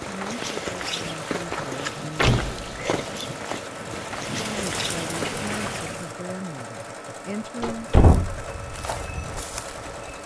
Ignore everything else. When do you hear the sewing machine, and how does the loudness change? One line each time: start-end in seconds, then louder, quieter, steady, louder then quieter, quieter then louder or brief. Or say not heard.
0.0-10.2 steady.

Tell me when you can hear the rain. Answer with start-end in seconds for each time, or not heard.
0.0-6.2.